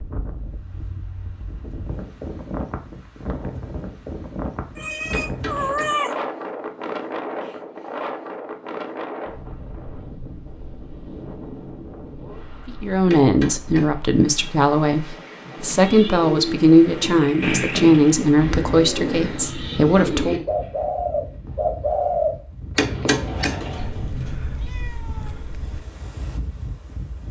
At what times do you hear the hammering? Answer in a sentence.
You can hear the hammering from 5.1 to 6.0 s, from 13.1 to 13.9 s and from 22.8 to 23.6 s.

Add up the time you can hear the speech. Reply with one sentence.
You can hear the speech for 8 seconds altogether.